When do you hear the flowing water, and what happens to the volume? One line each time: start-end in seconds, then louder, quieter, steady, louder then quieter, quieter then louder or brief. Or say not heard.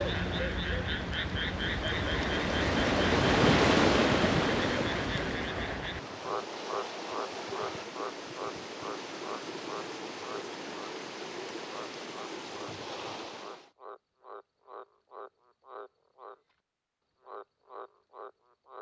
0.0-13.7 louder then quieter.